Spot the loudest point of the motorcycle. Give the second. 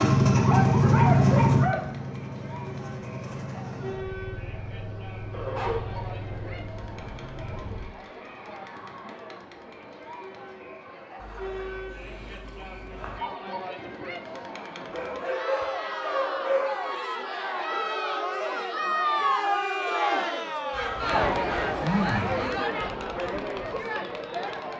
1 s.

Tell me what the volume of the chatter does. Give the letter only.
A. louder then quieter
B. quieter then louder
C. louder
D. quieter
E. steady
C.